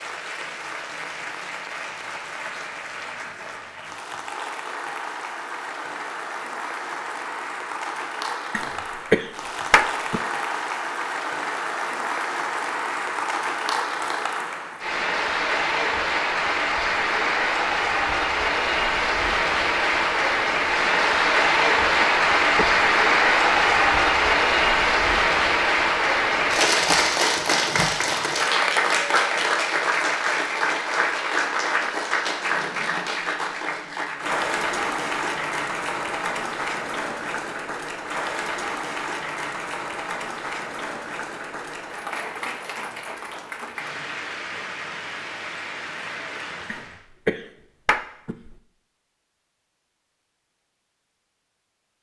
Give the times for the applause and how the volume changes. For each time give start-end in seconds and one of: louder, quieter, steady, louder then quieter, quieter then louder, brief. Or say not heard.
0.0-47.0 louder then quieter.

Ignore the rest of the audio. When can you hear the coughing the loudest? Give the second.
9 s.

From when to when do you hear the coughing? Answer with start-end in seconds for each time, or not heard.
8.5-10.2, 22.0-22.8, 46.6-48.5.